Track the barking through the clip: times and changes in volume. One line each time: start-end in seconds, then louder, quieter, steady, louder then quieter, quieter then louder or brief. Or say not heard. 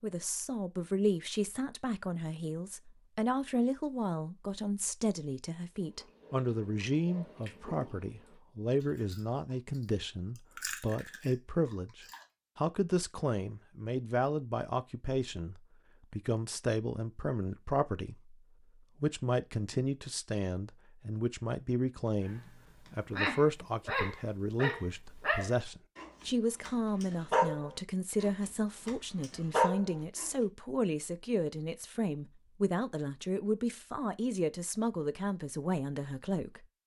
22.2-30.3 quieter then louder.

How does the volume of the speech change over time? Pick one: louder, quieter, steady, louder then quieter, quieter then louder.
steady.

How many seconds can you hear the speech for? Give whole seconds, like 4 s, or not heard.
37 s.